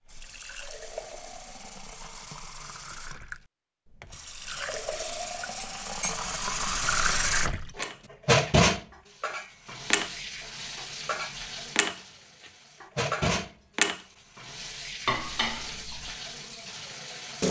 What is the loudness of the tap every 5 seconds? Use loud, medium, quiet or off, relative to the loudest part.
quiet, loud, medium, medium.